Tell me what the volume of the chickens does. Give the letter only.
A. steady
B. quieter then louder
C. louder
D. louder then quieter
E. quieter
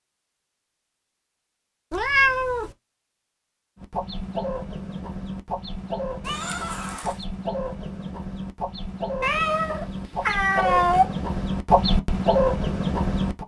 C.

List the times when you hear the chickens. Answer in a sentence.
You can hear the chickens from 3.8 to 13.4 s.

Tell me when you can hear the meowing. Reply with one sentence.
The meowing can be heard from 1.9 to 2.8 s, from 6.2 to 7.2 s and from 9.2 to 11.1 s.